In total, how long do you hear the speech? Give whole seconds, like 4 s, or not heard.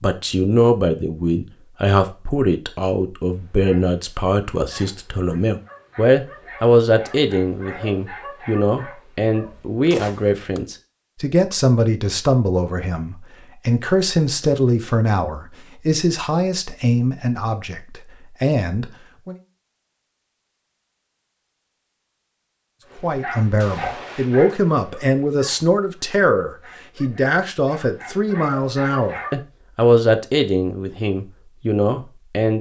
29 s.